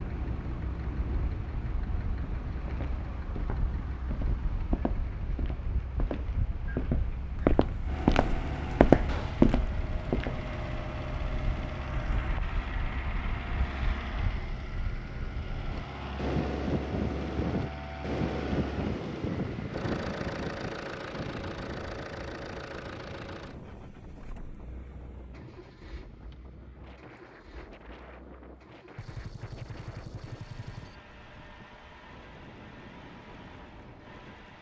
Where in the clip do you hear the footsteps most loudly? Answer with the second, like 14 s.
9 s.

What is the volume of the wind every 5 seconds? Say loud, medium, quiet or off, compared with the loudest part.
medium, medium, medium, loud, medium, quiet, quiet.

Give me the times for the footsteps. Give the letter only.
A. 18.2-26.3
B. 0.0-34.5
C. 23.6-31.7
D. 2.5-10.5
D.